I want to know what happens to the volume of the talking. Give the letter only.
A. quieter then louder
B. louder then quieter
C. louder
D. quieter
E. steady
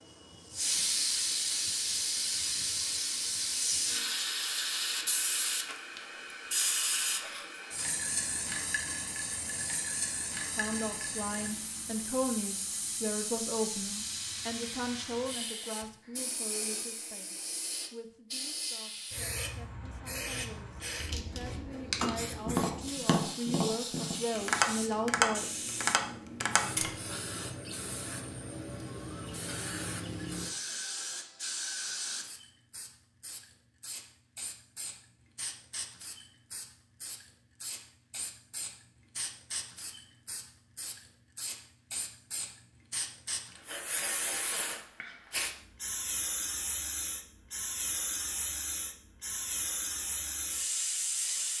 A.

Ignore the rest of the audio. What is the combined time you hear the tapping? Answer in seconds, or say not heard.
5 s.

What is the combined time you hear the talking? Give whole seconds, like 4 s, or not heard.
15 s.